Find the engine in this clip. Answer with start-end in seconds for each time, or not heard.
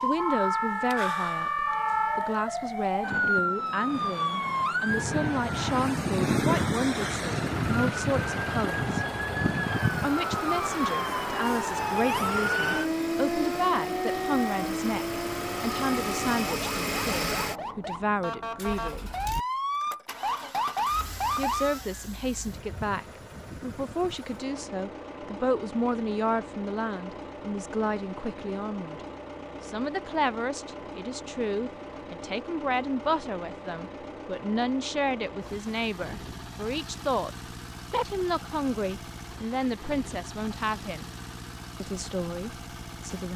6.9-43.3.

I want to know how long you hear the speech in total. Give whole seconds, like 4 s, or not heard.
38 s.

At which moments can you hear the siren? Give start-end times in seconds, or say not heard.
0.0-21.8.